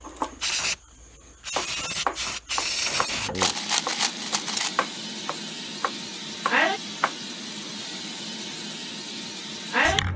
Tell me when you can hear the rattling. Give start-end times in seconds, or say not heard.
3.4-4.7.